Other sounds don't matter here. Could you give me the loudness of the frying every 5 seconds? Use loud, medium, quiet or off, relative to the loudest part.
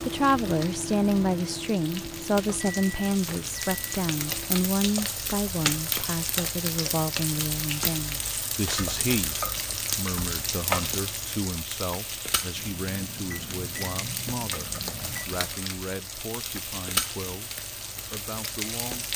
medium, loud, loud, loud.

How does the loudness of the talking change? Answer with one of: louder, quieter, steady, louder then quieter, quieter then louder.
quieter.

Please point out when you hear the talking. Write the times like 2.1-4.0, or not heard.
0.0-19.1.